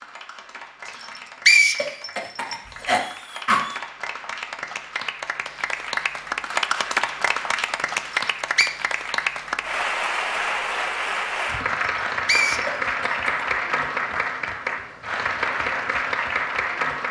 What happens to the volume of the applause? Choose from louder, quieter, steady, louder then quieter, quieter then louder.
louder.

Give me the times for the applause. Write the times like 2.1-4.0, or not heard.
0.0-17.0.